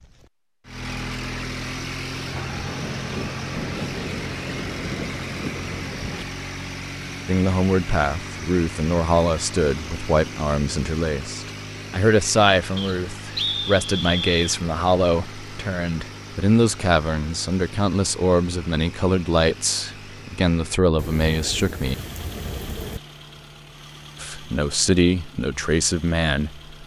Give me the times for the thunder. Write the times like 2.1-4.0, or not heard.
2.3-6.2, 20.9-23.0.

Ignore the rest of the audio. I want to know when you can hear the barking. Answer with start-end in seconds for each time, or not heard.
not heard.